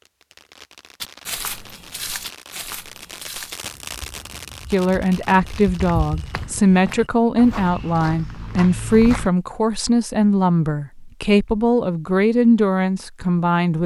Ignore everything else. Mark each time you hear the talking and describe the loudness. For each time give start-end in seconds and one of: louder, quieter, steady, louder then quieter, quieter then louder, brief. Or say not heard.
4.7-13.8 steady.